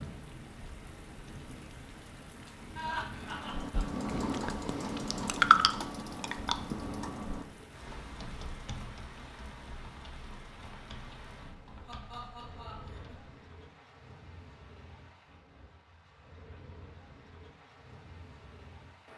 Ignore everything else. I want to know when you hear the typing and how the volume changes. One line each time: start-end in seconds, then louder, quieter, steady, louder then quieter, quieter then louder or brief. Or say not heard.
3.1-13.2 louder then quieter.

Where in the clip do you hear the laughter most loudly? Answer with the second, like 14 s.
3 s.